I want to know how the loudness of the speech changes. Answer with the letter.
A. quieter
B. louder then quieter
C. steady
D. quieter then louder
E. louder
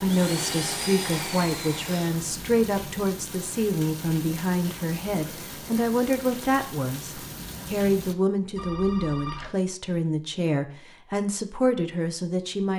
C.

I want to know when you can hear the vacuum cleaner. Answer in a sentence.
You can hear the vacuum cleaner from 0.0 to 2.2 s.